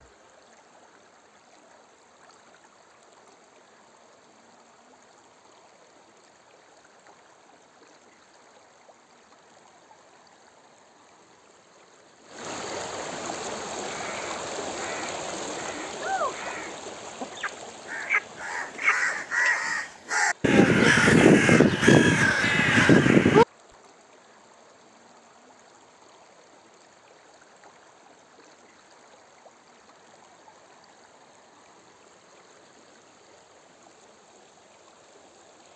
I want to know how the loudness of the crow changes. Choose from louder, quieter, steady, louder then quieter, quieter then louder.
louder.